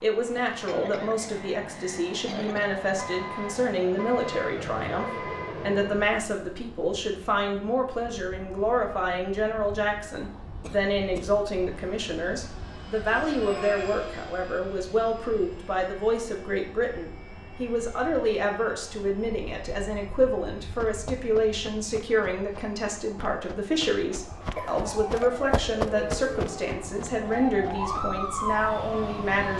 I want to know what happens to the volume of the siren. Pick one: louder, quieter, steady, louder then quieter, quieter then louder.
louder.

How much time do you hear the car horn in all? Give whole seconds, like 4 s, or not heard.
3 s.